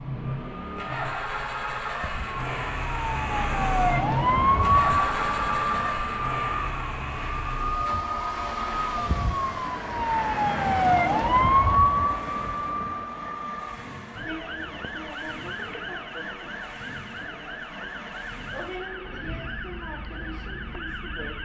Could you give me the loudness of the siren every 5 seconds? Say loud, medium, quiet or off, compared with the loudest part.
loud, medium, loud, quiet, quiet.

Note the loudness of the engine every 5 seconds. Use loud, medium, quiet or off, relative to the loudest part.
loud, loud, medium, medium, quiet.